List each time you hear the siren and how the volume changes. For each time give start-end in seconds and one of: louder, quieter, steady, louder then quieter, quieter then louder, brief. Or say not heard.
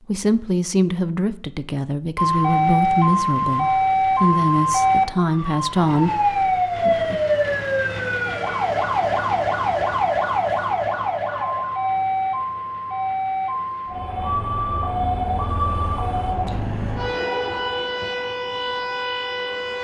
2.1-19.7 quieter.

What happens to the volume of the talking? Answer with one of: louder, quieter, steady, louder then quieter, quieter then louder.
steady.